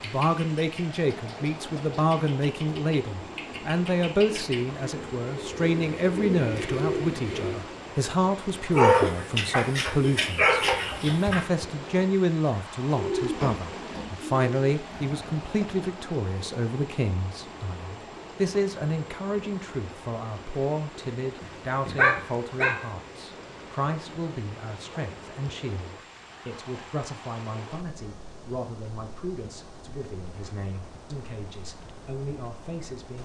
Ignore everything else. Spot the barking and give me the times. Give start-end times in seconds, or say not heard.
8.7-11.4, 21.9-22.8.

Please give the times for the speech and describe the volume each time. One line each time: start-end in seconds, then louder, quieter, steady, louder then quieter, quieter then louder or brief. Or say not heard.
0.0-33.1 quieter.